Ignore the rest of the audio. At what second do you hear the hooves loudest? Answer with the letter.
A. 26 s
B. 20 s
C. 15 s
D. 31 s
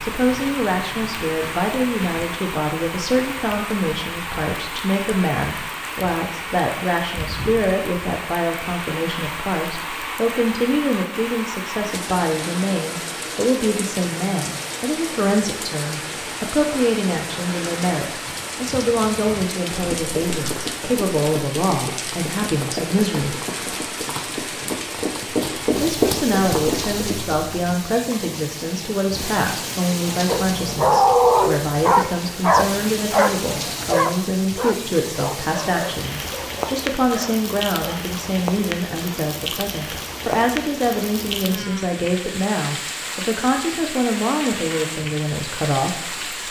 A.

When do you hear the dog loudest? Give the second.
31 s.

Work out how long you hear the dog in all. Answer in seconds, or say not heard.
8 s.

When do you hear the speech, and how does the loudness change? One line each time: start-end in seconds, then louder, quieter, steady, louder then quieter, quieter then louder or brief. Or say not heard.
0.0-23.4 steady
25.8-46.4 steady.